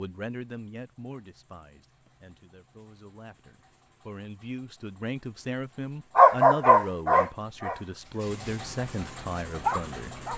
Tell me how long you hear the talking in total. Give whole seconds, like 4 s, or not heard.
10 s.